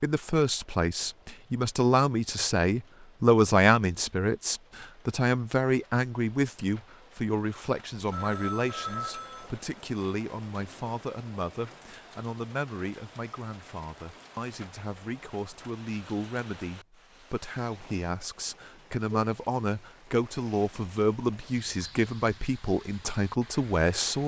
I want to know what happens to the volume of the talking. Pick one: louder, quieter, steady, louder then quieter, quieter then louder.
quieter then louder.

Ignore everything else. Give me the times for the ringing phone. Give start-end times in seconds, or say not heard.
8.1-9.5.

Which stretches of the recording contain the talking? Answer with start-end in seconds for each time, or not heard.
0.0-24.2.